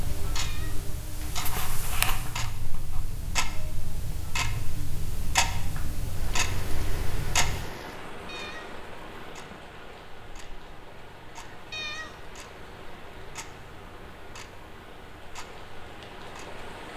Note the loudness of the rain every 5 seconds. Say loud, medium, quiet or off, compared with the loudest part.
off, loud, medium, loud.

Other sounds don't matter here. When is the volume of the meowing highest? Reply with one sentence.
The volume of the meowing peaks at 12 seconds.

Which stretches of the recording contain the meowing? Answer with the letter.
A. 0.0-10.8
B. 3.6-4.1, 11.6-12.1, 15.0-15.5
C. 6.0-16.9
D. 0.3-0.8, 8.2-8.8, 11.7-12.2
D.